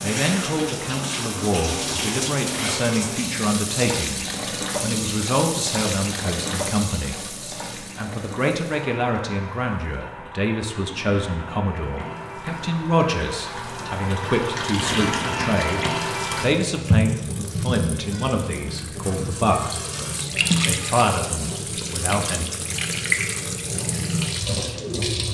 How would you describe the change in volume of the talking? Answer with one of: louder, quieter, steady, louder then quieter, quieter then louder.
steady.